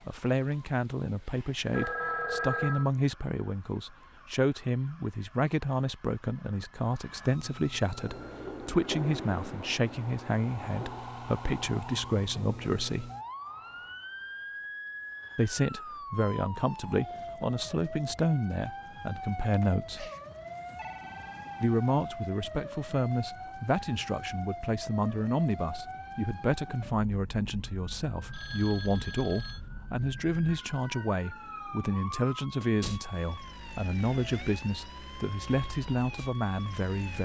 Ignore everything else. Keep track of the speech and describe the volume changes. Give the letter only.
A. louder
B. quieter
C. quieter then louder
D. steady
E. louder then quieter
D.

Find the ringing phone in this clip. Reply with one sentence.
The ringing phone can be heard from 1.7 to 2.9 s, from 19.5 to 21.8 s and from 28.3 to 29.6 s.